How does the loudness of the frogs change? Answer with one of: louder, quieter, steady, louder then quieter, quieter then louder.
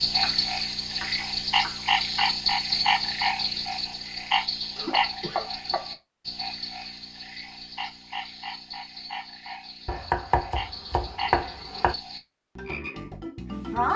quieter.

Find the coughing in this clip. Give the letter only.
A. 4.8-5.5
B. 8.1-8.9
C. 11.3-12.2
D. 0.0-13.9
A.